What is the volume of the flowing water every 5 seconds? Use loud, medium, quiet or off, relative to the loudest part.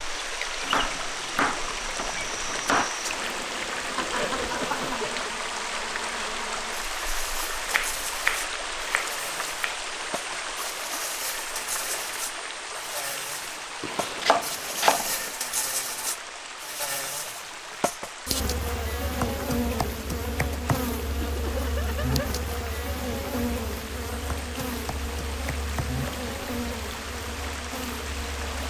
loud, loud, loud, medium, medium, medium.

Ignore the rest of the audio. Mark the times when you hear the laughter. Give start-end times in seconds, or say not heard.
4.0-5.3, 21.2-22.2.